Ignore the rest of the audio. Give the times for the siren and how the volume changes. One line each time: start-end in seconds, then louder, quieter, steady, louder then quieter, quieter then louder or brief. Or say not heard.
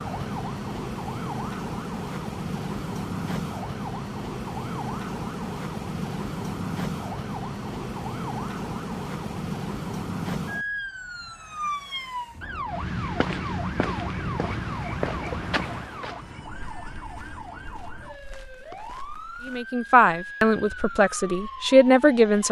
0.0-22.4 quieter.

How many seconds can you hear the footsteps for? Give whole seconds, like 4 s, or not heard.
7 s.